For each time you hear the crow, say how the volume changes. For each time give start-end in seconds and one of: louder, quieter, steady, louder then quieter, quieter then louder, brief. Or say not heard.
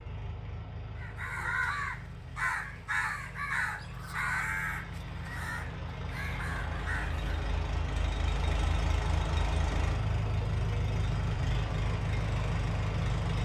0.9-7.3 quieter.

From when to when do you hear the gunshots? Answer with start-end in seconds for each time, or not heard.
not heard.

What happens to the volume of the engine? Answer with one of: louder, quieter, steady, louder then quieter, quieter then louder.
louder.